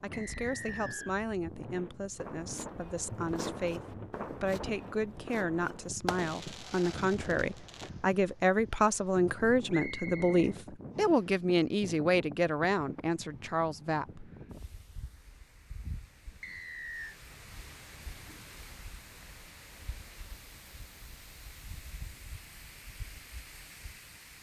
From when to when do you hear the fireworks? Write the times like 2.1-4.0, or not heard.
2.1-7.9.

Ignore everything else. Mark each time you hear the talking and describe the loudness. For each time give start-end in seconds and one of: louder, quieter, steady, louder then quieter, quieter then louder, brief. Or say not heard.
0.0-14.3 louder.